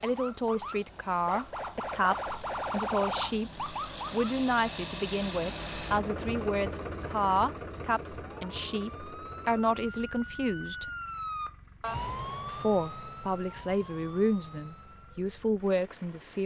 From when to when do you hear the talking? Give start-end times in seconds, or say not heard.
0.0-10.8, 12.4-16.4.